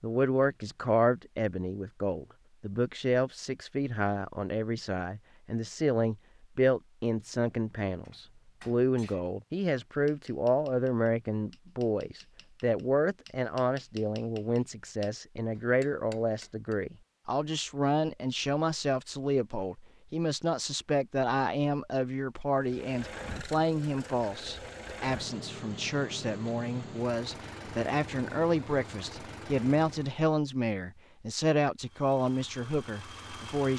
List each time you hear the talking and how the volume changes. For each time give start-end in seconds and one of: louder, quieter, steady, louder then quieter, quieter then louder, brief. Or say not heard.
0.0-33.7 steady.